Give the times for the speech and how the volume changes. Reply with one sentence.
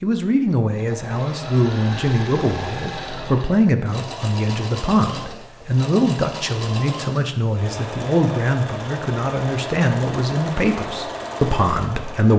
You can hear the speech from 0.0 to 12.3 s, at a steady volume.